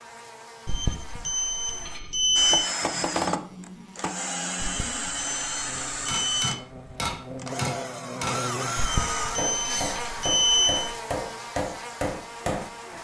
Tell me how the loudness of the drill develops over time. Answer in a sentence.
The volume of the drill goes down, then up.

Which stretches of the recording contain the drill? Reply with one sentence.
The drill can be heard from 2.4 to 9.9 s.